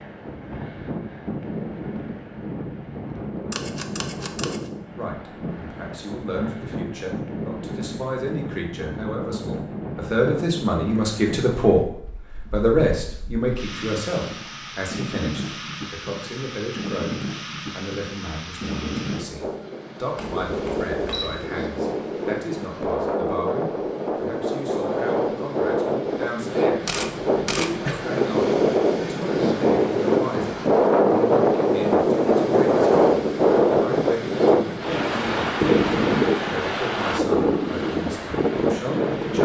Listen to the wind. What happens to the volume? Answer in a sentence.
The loudness of the wind goes up.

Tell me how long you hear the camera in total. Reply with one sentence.
The camera can be heard for 4 seconds in total.